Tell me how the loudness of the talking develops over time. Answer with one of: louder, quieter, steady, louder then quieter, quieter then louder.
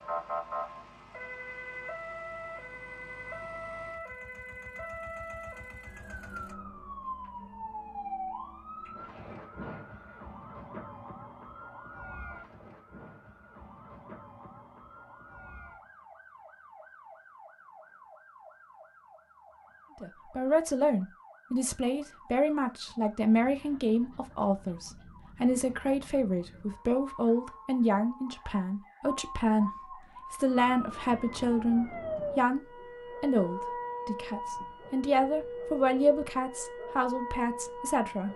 steady.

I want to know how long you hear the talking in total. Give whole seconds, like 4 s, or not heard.
18 s.